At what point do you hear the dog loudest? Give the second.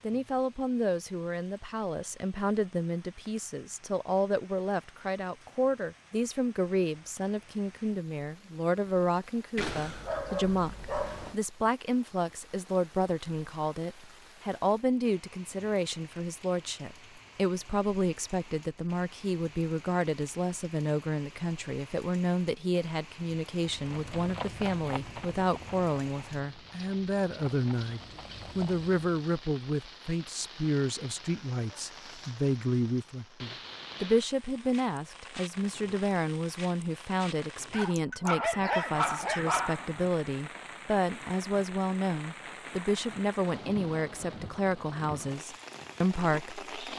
39 s.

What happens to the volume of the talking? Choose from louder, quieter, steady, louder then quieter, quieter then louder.
steady.